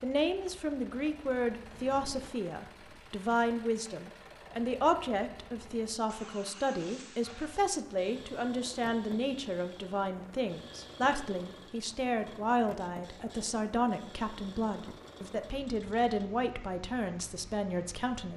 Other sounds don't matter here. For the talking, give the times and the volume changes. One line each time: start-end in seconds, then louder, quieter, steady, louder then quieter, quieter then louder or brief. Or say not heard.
0.0-18.3 steady.